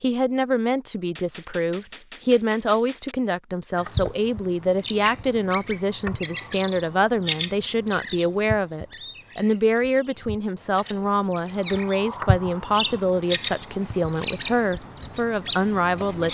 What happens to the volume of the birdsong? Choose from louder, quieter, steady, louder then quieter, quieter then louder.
quieter then louder.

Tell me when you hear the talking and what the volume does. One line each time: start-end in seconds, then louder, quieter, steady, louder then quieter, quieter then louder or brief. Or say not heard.
0.0-16.2 steady.